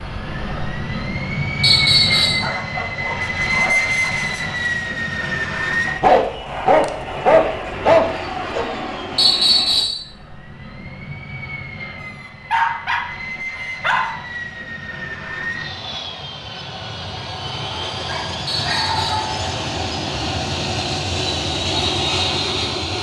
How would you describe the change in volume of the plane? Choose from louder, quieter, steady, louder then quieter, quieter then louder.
quieter then louder.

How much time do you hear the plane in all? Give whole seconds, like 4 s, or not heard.
23 s.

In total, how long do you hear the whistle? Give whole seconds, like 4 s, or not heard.
2 s.